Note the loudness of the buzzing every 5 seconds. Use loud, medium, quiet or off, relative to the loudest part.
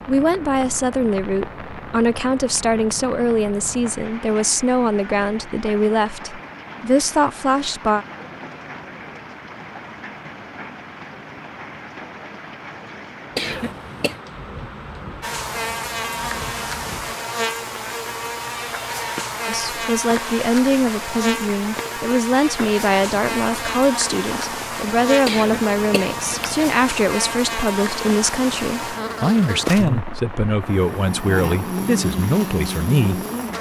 off, off, off, loud, loud, loud, loud.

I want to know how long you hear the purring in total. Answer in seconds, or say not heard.
not heard.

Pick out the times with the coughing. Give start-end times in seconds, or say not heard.
13.3-14.2, 25.2-26.7.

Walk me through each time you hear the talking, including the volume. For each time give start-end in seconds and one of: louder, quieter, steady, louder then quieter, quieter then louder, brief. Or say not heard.
0.1-8.1 steady
19.4-33.2 steady.